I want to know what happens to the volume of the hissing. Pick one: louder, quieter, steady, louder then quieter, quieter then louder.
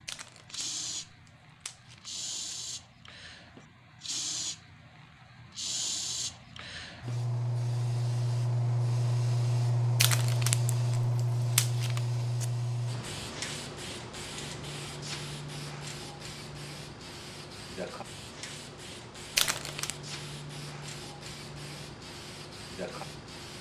louder then quieter.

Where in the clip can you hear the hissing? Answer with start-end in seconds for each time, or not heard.
0.0-23.5.